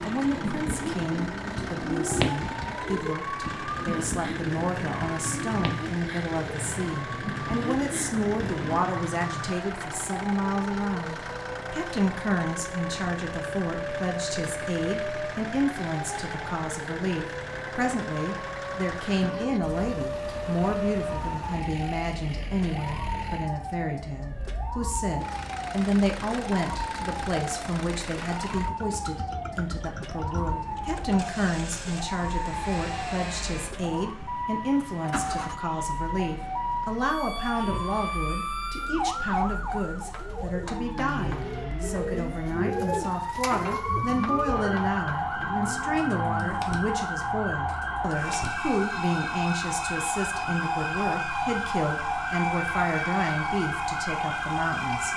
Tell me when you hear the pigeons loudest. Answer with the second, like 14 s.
2 s.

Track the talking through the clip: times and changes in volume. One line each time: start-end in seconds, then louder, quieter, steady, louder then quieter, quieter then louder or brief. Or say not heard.
0.0-55.1 steady.